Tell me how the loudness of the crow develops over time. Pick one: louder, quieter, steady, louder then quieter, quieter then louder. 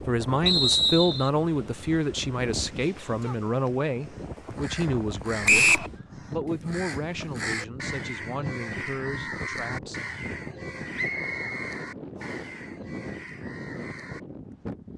louder then quieter.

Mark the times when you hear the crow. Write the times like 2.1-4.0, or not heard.
2.8-14.2.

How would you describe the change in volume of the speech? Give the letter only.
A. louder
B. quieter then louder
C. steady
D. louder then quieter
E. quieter
E.